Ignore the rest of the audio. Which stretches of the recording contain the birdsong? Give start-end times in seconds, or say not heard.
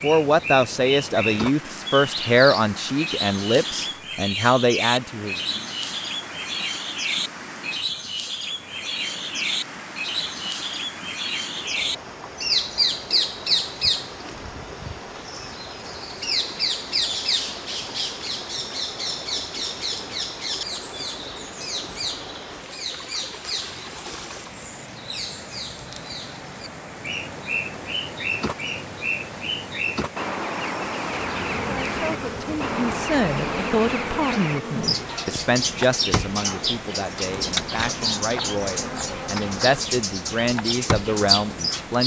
0.0-42.0.